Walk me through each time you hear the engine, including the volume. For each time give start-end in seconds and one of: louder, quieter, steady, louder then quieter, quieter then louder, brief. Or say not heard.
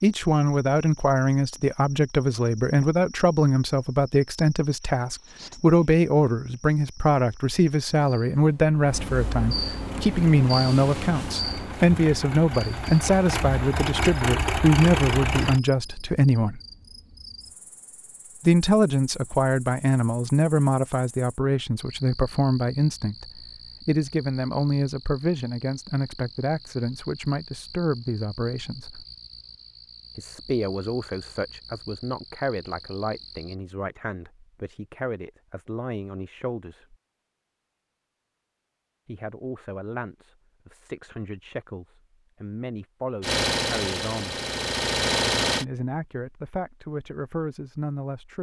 9.8-15.6 louder
43.2-45.6 brief.